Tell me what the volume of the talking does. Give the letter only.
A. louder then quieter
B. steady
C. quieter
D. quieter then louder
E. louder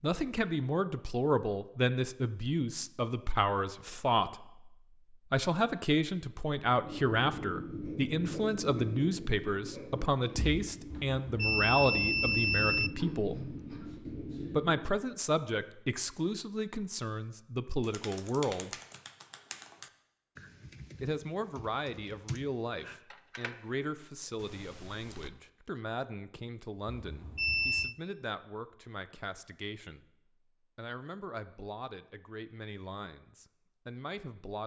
C.